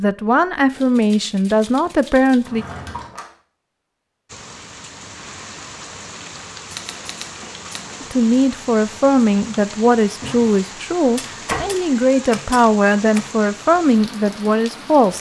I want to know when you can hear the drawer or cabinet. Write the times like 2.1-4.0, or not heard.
2.4-3.4, 10.1-11.8.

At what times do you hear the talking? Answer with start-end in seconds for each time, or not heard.
0.0-2.6, 8.0-15.1.